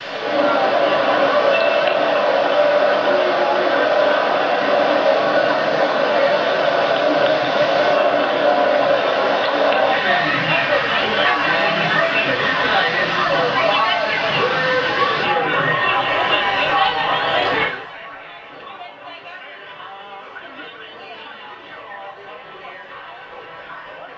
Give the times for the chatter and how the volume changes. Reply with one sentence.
You can hear the chatter from 0.0 to 24.1 s, getting quieter.